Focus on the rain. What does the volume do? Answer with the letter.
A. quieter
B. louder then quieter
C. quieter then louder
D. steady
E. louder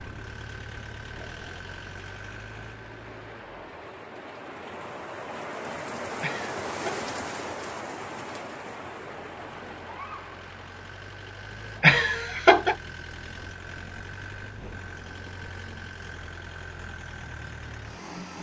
B.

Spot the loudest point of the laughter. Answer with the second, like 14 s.
12 s.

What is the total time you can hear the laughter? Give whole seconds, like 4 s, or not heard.
2 s.